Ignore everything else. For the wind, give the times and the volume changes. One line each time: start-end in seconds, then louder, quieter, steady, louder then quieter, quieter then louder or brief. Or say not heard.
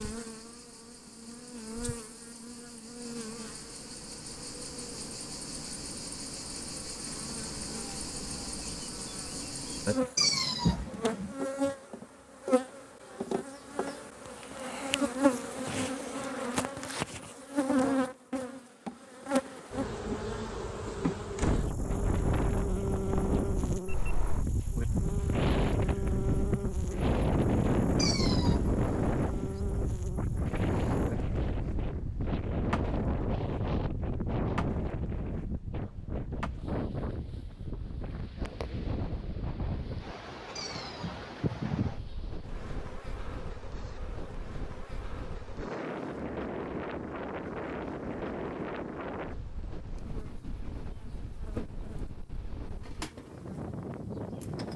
21.4-54.7 quieter.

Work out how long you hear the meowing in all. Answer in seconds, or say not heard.
4 s.